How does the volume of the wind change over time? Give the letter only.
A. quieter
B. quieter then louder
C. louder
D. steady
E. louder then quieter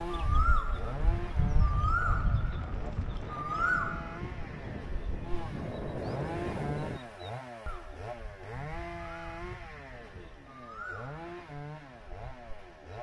C.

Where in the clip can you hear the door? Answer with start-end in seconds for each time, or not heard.
not heard.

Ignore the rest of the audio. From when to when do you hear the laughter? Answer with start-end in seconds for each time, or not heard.
9.6-10.4.